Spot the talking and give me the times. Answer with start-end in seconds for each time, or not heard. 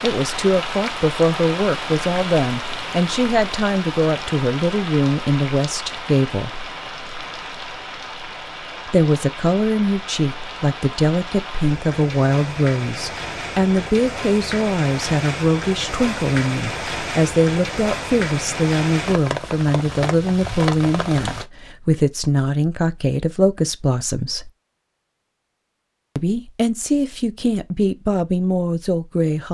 0.0-6.7, 8.8-24.5, 26.1-29.4.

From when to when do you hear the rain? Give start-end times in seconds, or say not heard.
0.0-21.4.